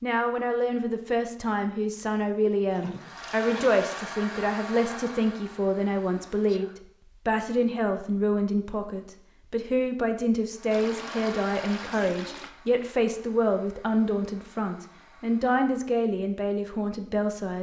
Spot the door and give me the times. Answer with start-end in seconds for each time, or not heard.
not heard.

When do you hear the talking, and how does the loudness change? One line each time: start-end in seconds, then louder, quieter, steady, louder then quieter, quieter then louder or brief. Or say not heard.
0.0-17.5 steady.